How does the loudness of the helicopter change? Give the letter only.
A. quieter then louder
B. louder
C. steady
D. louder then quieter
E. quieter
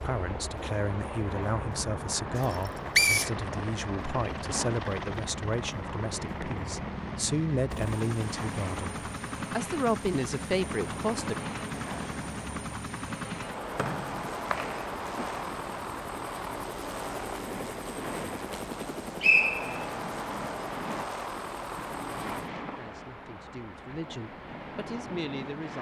C.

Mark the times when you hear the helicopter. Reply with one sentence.
You can hear the helicopter from 0.0 to 22.5 s.